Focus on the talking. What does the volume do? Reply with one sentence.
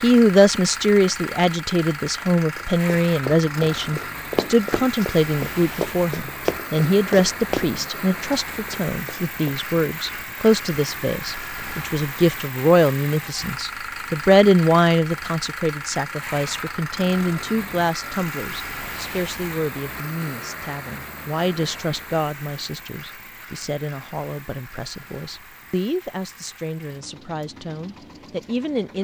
The loudness of the talking goes down.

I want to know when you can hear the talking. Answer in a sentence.
You can hear the talking from 0.0 to 28.9 s.